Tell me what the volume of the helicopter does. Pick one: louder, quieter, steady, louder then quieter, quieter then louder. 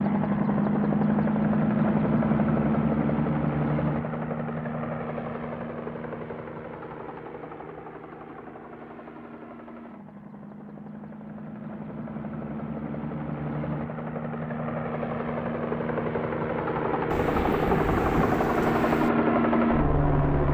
quieter then louder.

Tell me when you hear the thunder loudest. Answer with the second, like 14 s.
18 s.